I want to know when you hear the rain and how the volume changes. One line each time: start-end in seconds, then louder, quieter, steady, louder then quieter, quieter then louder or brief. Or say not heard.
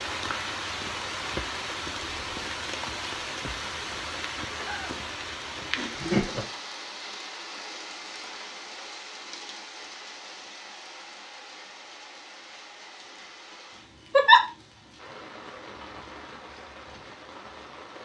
0.0-17.9 quieter.